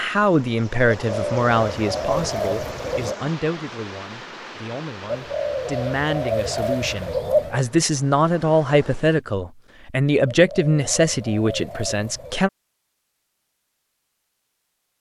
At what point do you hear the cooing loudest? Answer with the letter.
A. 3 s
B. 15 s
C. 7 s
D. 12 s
C.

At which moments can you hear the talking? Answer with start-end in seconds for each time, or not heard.
0.0-12.5.